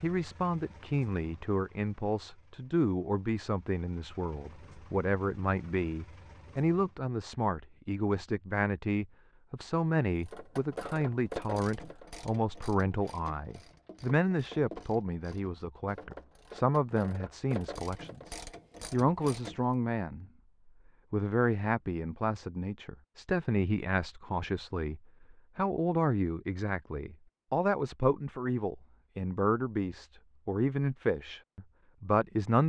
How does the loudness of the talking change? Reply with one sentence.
The volume of the talking stays about the same.